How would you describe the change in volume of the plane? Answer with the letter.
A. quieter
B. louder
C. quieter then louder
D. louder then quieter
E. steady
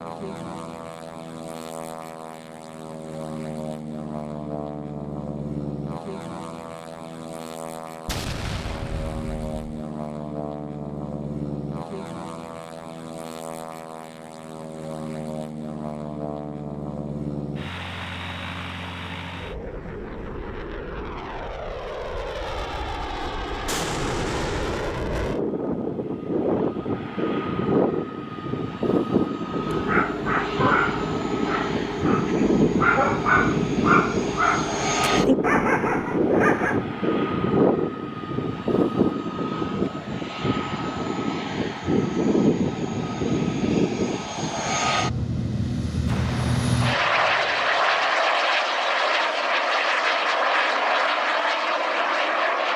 B.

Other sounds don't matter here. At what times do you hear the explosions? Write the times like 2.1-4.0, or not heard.
8.1-9.7, 23.6-24.9, 46.0-48.1.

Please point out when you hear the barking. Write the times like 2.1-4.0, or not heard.
29.5-36.9.